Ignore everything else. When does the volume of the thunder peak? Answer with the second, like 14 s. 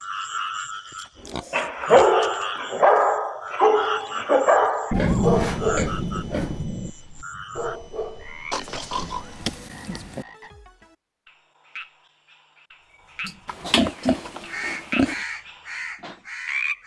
5 s.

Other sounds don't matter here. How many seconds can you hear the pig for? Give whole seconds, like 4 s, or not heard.
7 s.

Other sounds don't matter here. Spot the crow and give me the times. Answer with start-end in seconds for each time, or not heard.
13.2-16.8.